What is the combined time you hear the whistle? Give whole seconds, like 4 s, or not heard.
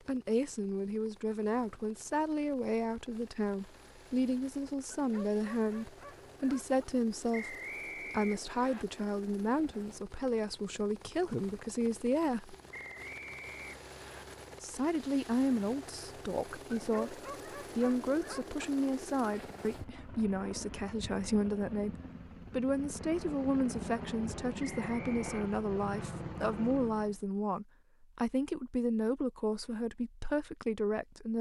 4 s.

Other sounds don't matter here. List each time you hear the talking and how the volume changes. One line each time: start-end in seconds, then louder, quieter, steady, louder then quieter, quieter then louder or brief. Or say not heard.
0.1-12.6 steady
14.6-31.3 steady.